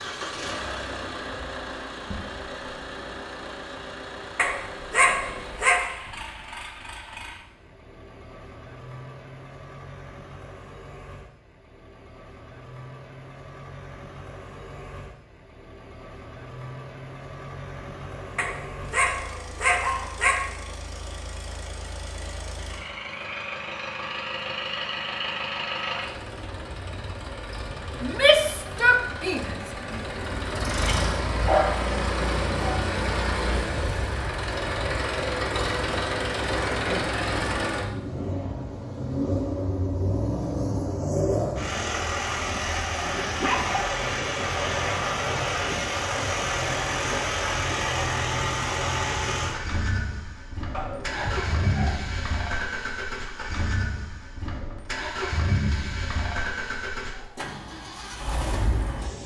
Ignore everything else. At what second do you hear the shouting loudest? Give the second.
28 s.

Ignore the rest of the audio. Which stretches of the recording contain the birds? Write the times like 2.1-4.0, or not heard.
not heard.